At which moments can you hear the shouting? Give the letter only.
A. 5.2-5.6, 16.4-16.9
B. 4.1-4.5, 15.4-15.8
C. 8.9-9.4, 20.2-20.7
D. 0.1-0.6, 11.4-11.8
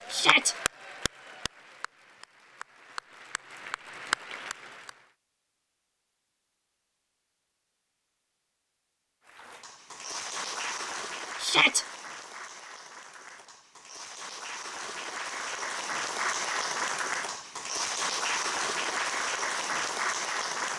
D.